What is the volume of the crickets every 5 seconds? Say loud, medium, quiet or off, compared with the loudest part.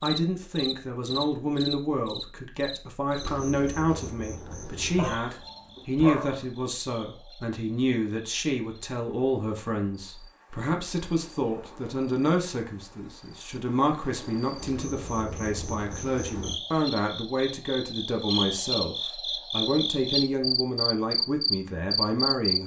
medium, quiet, quiet, medium, loud.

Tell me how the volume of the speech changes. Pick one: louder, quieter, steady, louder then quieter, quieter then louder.
steady.